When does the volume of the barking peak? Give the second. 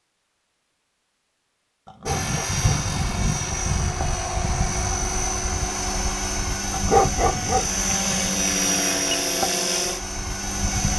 7 s.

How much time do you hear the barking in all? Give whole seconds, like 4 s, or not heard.
2 s.